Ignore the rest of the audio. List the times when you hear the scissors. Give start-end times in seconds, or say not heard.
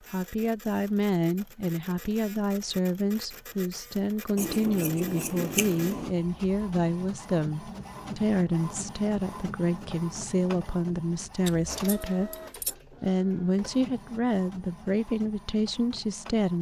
4.3-6.2, 11.4-12.8.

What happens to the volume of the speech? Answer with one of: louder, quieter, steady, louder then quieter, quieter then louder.
steady.